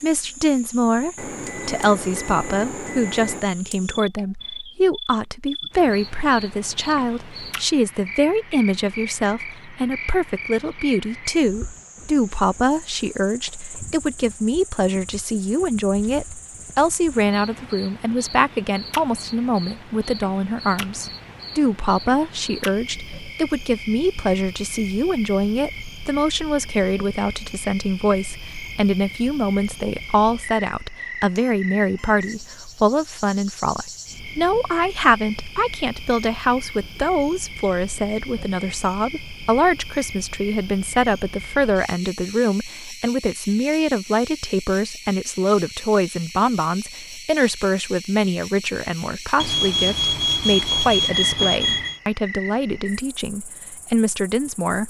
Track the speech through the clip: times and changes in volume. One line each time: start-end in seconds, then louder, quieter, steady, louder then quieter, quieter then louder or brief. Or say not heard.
0.0-54.8 steady.